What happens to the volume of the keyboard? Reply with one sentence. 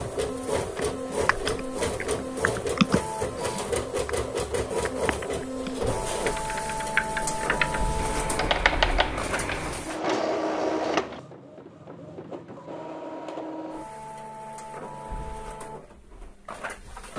The loudness of the keyboard goes down, then up.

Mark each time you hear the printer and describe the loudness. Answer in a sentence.
You can hear the printer from 0.0 to 17.1 s, getting quieter.